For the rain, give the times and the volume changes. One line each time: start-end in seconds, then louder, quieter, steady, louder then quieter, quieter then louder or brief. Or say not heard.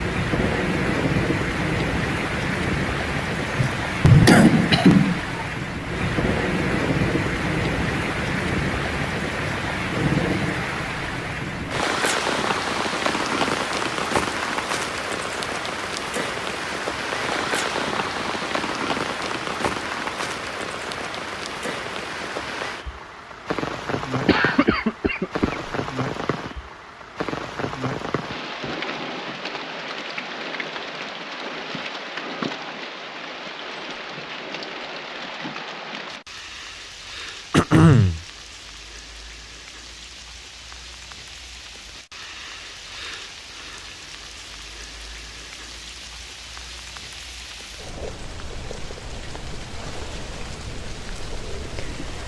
0.0-52.2 quieter.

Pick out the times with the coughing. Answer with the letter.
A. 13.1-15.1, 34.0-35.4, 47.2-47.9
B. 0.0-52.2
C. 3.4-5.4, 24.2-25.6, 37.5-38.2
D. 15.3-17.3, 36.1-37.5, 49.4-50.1
C.